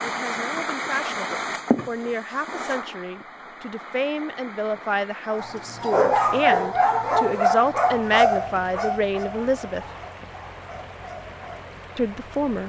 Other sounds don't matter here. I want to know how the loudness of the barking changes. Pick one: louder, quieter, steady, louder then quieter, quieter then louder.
quieter.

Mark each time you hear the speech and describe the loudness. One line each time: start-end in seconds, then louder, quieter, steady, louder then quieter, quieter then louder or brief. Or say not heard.
0.0-9.8 louder
11.9-12.6 brief.